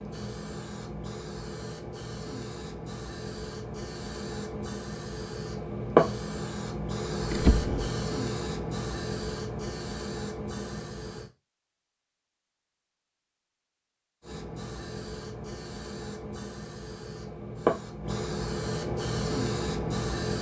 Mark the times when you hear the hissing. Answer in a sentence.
The hissing can be heard from 0.0 to 11.3 s and from 14.2 to 20.3 s.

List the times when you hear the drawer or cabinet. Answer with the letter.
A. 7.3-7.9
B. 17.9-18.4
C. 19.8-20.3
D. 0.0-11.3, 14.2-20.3
A.